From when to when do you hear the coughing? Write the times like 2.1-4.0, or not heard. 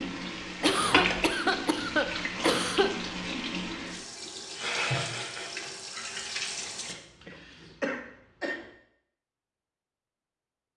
0.6-2.9, 6.9-8.7.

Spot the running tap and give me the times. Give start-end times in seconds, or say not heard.
0.0-7.0.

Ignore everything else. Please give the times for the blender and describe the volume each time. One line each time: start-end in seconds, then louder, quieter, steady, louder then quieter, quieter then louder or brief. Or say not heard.
not heard.